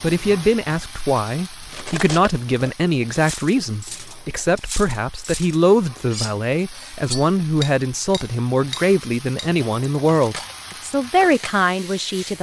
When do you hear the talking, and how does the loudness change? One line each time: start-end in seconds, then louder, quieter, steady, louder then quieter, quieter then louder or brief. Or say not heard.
0.0-12.3 steady.